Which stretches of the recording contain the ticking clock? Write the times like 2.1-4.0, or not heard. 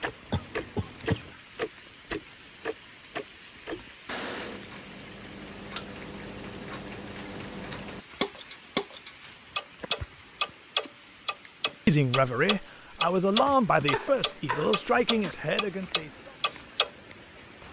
0.0-16.9.